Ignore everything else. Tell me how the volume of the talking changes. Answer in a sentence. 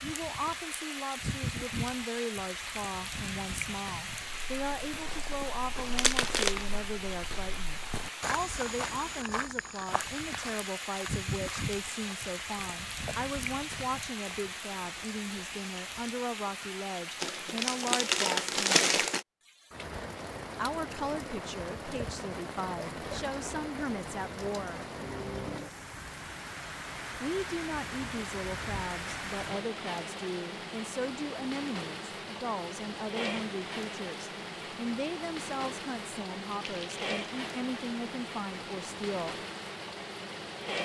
The loudness of the talking stays about the same.